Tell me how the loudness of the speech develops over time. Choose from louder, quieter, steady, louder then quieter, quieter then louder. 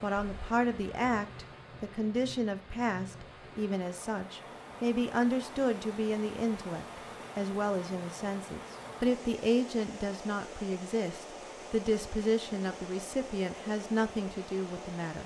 steady.